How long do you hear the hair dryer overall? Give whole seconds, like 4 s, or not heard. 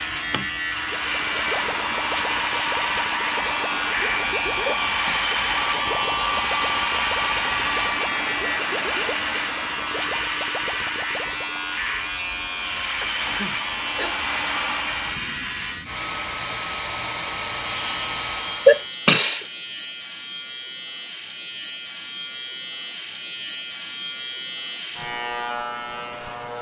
19 s.